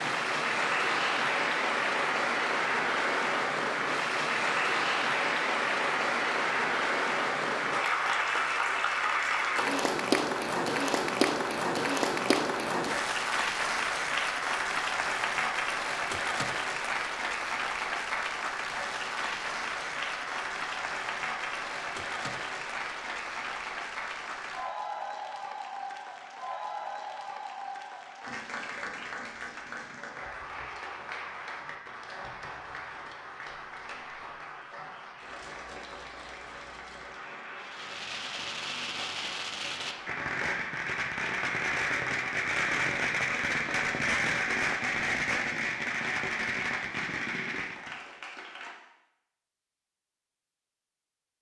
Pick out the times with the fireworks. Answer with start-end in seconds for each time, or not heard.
37.5-48.0.